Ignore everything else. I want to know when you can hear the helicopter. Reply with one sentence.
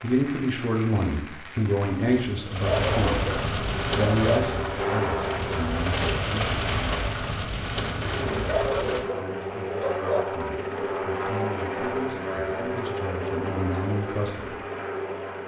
You can hear the helicopter from 3.5 to 6.0 s and from 8.1 to 15.4 s.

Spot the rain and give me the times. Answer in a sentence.
The rain can be heard from 0.0 to 9.1 s.